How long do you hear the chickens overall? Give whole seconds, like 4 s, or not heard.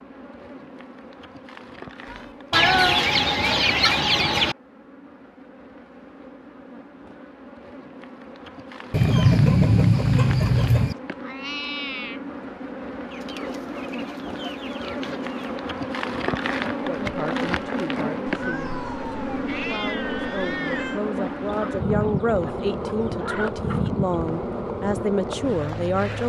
9 s.